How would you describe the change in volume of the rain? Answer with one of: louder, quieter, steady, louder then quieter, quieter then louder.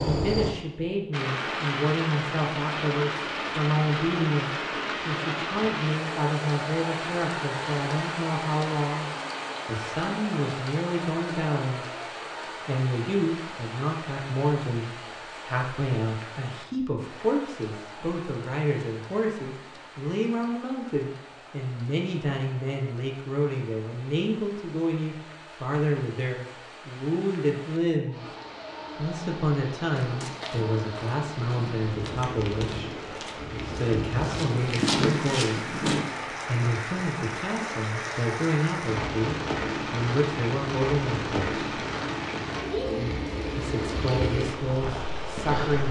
quieter then louder.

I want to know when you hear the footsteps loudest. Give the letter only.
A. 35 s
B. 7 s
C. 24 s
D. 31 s
A.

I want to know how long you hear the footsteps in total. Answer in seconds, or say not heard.
6 s.